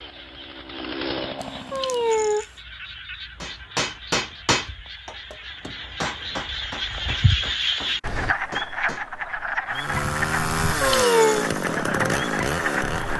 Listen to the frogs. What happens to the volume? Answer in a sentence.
The loudness of the frogs goes up.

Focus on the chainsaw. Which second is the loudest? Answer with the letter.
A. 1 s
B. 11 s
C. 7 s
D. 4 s
B.